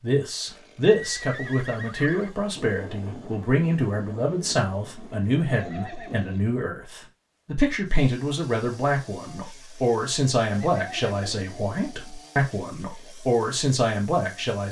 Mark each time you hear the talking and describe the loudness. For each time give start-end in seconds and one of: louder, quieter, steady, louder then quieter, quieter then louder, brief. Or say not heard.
0.0-14.6 steady.